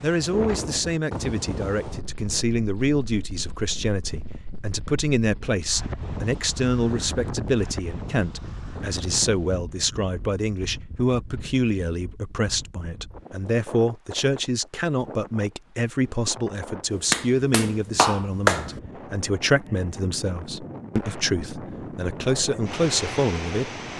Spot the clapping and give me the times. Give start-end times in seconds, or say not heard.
16.9-18.7.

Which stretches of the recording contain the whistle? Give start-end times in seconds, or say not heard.
not heard.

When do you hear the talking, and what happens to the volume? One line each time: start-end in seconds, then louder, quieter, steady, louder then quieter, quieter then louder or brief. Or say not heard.
0.0-23.9 steady.